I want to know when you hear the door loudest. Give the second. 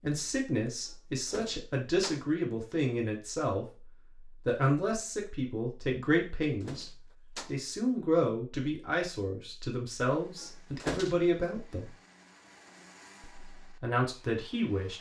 11 s.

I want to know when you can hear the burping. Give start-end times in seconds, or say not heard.
not heard.